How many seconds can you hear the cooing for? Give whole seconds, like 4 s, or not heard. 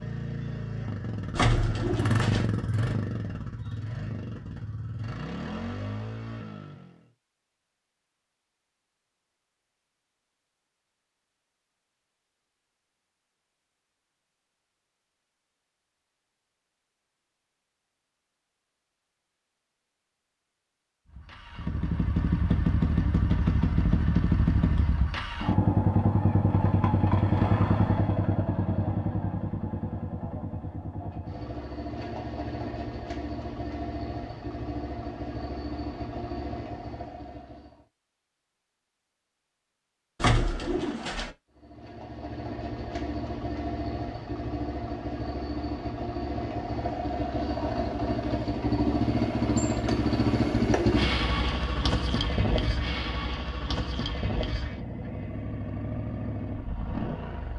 2 s.